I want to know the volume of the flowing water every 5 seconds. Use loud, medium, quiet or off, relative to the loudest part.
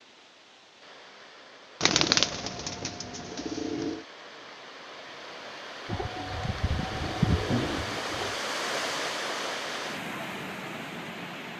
quiet, loud, loud.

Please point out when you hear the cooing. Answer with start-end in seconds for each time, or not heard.
1.8-4.0, 5.8-8.4.